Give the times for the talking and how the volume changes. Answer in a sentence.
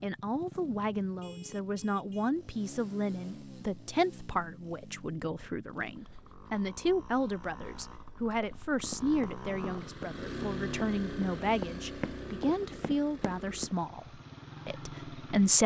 The talking can be heard from 0.0 to 14.1 s, at a steady volume; and briefly from 14.7 to 15.6 s.